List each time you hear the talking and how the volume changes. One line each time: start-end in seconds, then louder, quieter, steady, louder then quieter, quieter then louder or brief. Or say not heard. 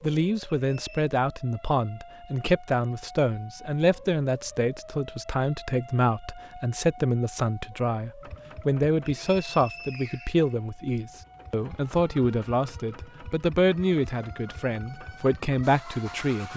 0.0-16.5 steady.